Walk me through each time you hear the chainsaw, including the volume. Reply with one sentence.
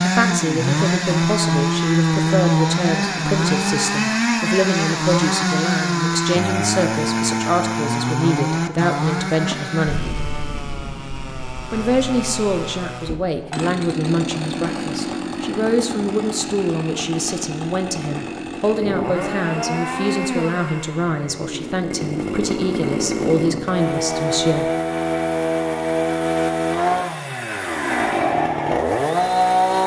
The chainsaw can be heard from 0.0 to 29.8 s, getting quieter then louder.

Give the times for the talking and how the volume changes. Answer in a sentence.
You can hear the talking from 0.0 to 10.1 s, at a steady volume; and from 11.7 to 24.7 s, at a steady volume.